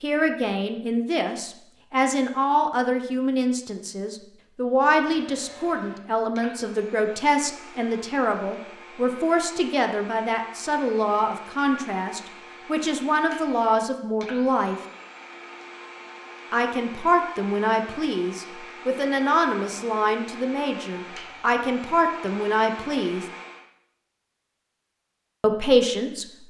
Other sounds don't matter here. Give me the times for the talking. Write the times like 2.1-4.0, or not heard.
0.0-14.8, 16.5-23.2, 25.4-26.4.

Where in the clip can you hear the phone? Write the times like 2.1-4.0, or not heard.
not heard.